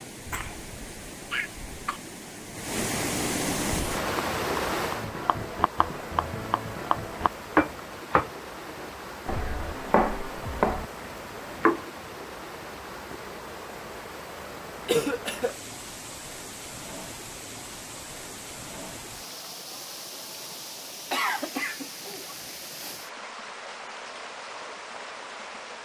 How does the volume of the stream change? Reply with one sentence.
The volume of the stream goes down.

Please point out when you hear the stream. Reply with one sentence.
You can hear the stream from 0.0 to 25.7 s.